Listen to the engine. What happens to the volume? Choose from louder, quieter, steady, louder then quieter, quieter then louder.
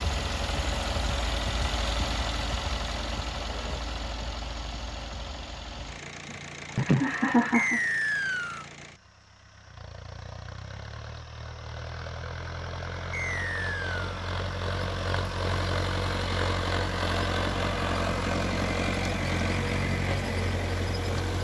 quieter then louder.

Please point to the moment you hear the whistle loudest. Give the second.
8 s.